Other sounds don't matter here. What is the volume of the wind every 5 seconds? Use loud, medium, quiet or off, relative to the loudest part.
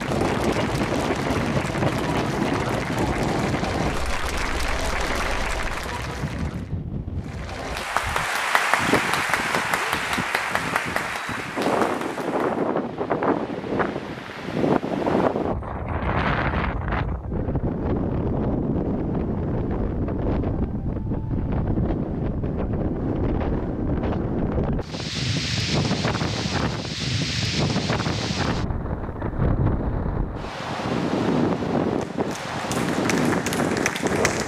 loud, medium, loud, loud, loud, loud, loud.